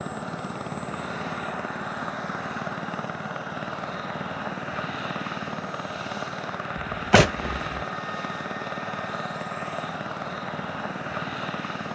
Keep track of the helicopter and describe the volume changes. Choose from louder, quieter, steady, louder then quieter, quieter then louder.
steady.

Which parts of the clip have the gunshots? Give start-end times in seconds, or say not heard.
6.9-7.8.